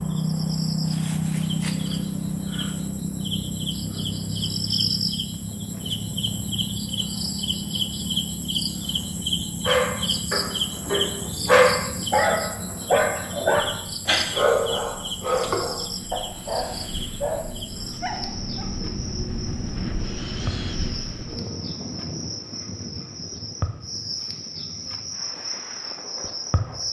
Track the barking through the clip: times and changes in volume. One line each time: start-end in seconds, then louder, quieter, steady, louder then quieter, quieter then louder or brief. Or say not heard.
9.7-18.7 quieter.